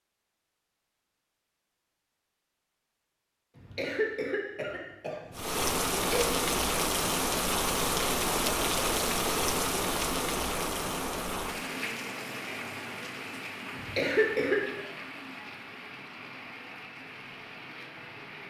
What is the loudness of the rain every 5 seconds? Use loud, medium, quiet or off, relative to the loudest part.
off, loud, medium, quiet.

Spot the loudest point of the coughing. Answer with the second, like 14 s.
14 s.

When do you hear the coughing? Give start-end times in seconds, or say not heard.
3.5-6.3, 13.7-14.8.